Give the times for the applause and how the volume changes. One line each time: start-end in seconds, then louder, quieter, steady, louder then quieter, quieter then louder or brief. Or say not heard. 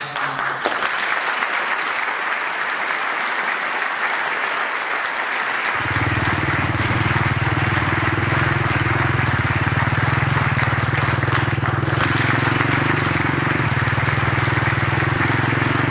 0.0-15.8 steady.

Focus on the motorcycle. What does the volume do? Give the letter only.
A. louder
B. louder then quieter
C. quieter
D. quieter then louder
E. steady
E.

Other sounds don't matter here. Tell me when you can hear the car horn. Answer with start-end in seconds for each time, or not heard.
not heard.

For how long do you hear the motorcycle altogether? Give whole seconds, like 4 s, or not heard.
10 s.